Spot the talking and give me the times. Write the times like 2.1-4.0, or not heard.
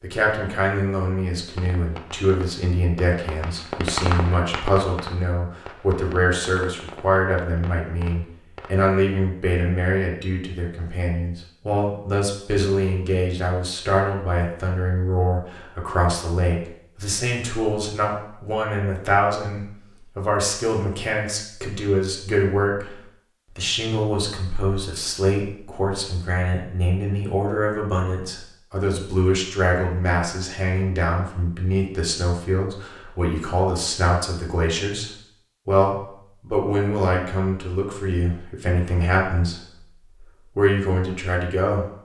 0.0-22.9, 23.6-41.9.